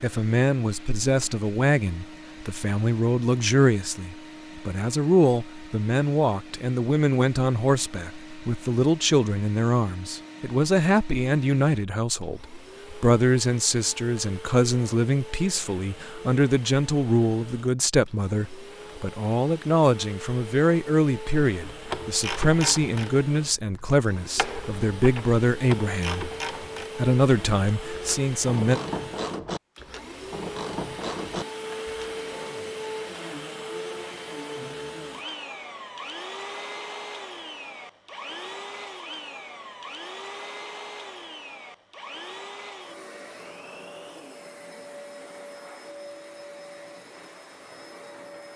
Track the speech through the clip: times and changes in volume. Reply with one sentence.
The speech can be heard from 0.0 to 26.2 s, at a steady volume; and briefly from 26.9 to 28.8 s.